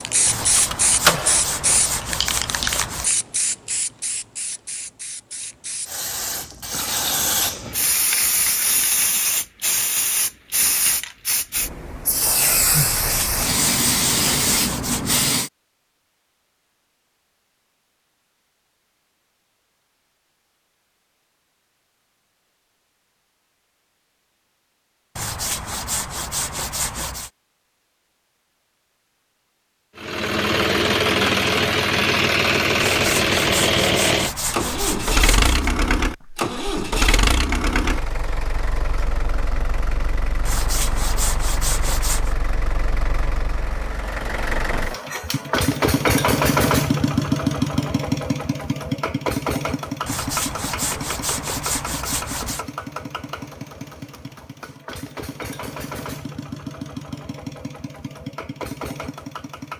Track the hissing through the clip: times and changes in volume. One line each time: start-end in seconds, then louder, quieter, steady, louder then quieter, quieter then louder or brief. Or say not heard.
0.0-15.5 quieter then louder.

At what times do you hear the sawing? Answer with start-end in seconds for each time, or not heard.
0.2-3.1, 12.8-15.3, 25.1-27.3, 32.8-35.5, 40.5-42.4, 50.0-52.6.